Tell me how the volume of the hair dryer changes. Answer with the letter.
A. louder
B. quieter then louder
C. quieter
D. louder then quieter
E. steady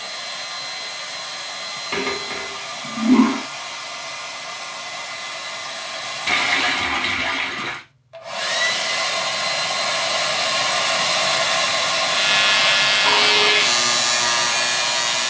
A.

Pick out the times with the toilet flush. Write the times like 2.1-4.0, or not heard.
1.9-3.5, 6.2-7.8, 13.1-13.7.